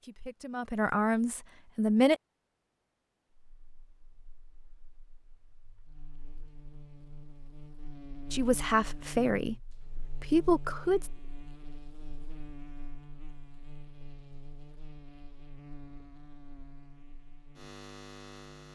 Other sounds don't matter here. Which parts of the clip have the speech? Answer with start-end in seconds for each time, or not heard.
0.0-2.1, 8.3-11.1.